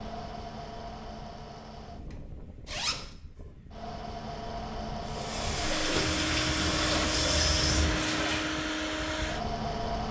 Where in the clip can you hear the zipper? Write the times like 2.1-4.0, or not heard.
2.6-3.1, 5.9-8.0.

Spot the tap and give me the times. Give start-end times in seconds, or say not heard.
5.0-8.6.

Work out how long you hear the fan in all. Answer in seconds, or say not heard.
10 s.